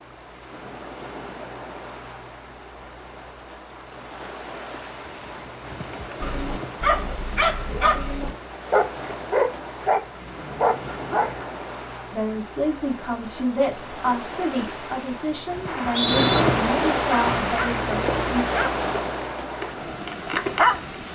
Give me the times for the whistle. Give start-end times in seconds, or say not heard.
15.7-16.4.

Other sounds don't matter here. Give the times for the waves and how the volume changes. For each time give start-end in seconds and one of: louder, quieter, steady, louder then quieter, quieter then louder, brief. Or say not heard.
0.0-21.0 louder.